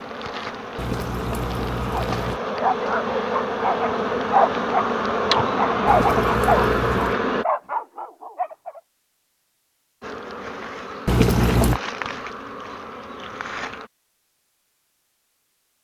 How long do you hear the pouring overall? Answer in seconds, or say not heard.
4 s.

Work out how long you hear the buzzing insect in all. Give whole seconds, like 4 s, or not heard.
11 s.